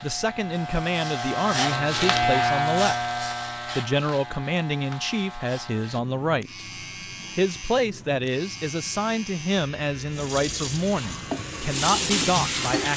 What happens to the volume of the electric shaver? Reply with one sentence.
The volume of the electric shaver goes down.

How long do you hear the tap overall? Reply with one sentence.
You can hear the tap for 3 seconds altogether.